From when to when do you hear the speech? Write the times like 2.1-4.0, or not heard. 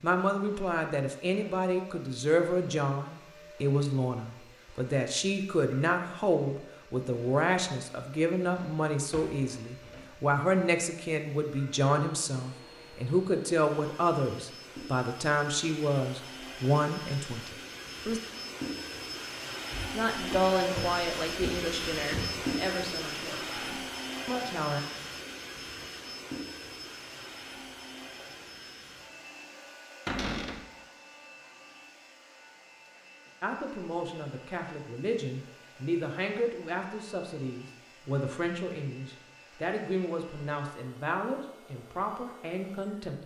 0.0-18.2, 19.9-24.8, 33.4-43.2.